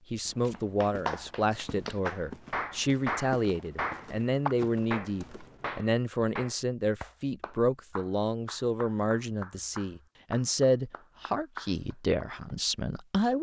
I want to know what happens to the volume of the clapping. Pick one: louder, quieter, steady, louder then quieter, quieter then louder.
quieter.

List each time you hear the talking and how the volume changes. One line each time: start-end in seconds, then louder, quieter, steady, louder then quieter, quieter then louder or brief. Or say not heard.
0.1-13.3 steady.